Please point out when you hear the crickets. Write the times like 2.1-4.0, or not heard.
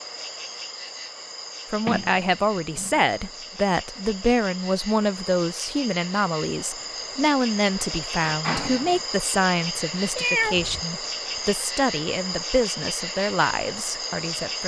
0.0-14.6.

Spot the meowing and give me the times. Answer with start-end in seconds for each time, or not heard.
10.2-10.8.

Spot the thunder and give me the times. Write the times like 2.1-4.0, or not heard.
not heard.